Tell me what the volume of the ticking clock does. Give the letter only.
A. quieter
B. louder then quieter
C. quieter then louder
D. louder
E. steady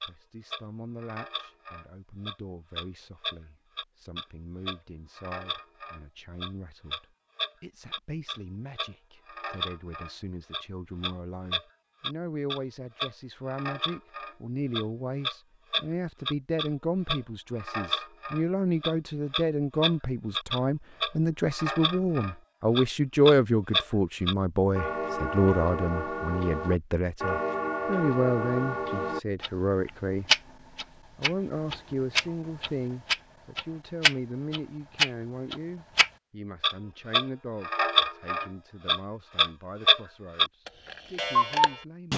D.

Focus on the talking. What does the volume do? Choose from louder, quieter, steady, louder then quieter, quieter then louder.
louder then quieter.